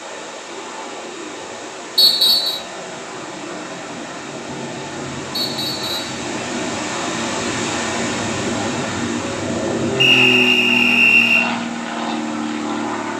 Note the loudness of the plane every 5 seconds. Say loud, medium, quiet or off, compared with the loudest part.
medium, loud, loud.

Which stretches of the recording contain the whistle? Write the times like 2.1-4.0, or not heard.
1.9-2.6, 5.3-6.2, 10.0-11.4.